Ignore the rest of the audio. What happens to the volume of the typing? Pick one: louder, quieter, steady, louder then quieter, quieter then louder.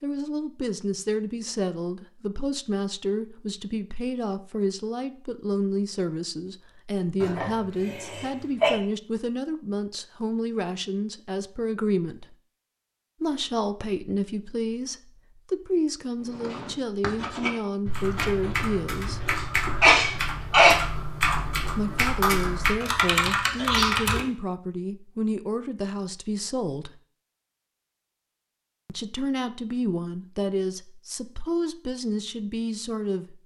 louder.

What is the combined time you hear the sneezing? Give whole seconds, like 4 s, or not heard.
4 s.